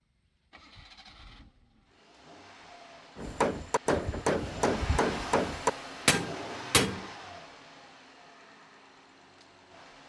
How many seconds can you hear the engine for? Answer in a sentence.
The engine can be heard for 10 seconds in total.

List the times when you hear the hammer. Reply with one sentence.
You can hear the hammer from 3.1 to 7.0 s.